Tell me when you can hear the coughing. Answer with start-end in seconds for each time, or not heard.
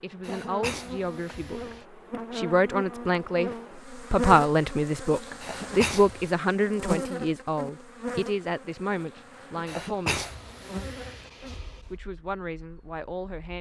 0.2-1.9, 5.4-6.3, 9.7-11.8.